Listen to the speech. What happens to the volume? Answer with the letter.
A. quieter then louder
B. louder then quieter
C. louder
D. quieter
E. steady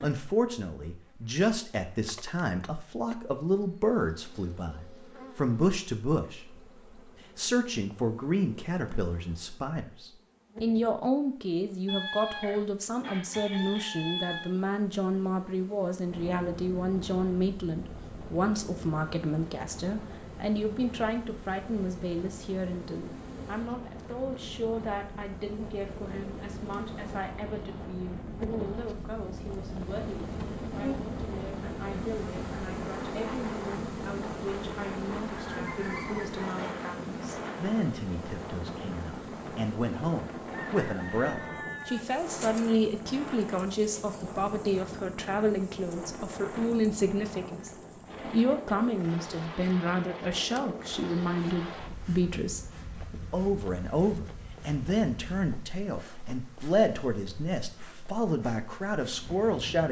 A.